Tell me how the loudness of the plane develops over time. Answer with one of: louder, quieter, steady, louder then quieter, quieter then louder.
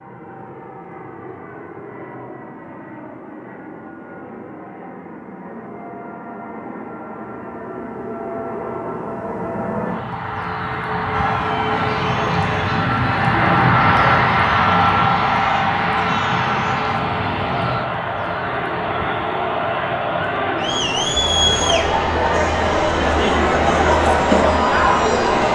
louder then quieter.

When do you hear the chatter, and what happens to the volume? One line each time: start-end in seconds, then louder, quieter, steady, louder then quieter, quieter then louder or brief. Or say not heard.
11.1-25.5 louder.